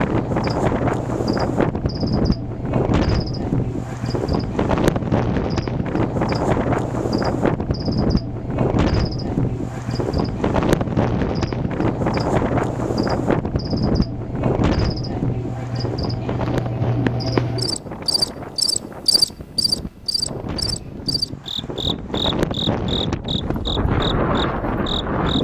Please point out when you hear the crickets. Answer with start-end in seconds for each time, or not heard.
0.0-25.4.